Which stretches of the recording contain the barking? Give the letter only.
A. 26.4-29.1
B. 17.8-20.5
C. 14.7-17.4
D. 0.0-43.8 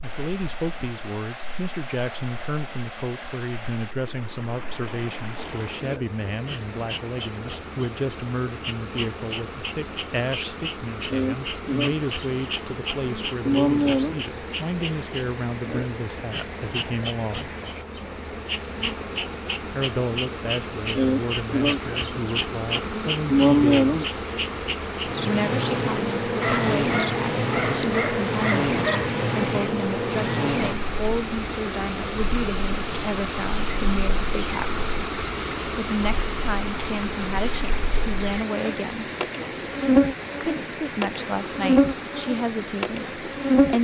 A.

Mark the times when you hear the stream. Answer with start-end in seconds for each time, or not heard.
0.0-43.8.